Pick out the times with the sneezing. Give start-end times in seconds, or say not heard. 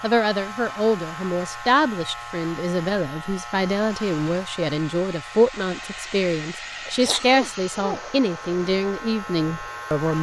6.8-8.0.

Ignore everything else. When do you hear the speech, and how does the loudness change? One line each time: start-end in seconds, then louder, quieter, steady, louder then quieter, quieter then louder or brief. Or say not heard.
0.0-10.1 steady.